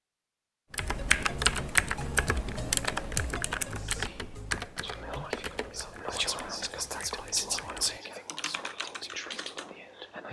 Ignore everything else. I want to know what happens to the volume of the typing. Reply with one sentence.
The loudness of the typing goes down, then up.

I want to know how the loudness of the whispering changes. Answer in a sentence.
The volume of the whispering goes up, then down.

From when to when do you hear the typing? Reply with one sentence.
You can hear the typing from 0.7 to 9.8 s.